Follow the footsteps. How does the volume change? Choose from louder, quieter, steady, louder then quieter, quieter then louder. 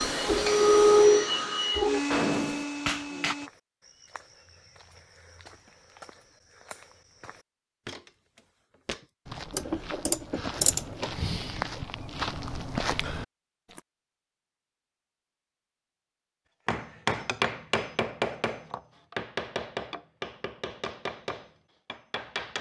louder.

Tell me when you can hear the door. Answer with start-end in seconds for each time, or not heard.
not heard.